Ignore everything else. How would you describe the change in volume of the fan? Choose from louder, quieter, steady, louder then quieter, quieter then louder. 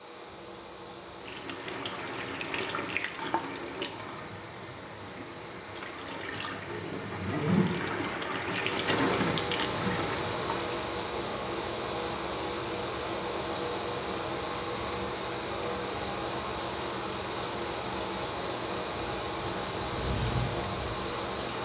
louder.